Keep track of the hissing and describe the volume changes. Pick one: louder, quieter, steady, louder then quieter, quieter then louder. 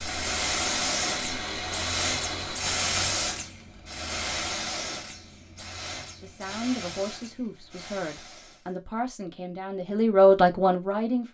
quieter.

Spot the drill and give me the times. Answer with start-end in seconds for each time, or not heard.
0.0-2.6.